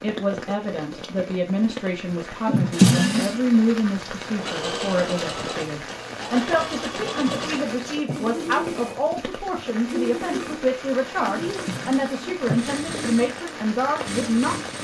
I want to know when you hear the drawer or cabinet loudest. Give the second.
3 s.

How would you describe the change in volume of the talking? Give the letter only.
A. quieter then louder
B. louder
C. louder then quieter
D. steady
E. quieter
D.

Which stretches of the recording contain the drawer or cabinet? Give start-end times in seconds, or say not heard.
2.5-3.4, 6.9-8.2, 11.3-12.7.